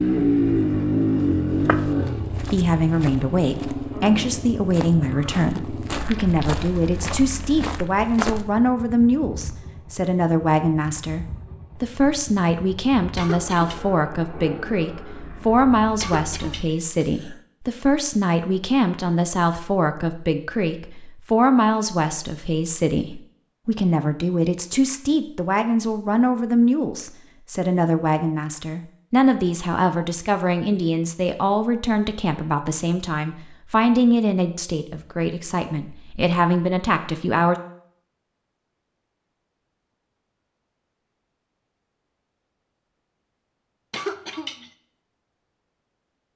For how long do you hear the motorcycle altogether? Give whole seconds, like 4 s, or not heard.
17 s.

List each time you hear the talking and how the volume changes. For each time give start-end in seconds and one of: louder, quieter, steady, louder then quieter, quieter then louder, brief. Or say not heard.
2.4-37.5 steady.